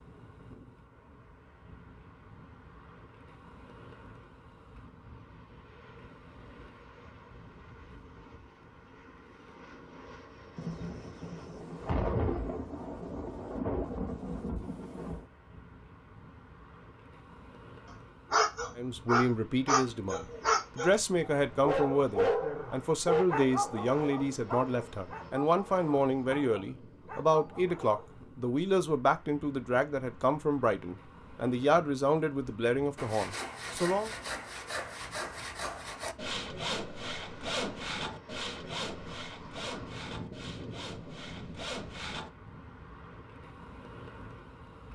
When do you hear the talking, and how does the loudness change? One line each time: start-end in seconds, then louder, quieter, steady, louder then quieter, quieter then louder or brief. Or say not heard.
18.8-34.1 steady.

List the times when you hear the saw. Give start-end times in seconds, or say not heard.
33.0-42.3.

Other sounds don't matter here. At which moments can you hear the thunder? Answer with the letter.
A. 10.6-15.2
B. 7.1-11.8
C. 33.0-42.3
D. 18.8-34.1
A.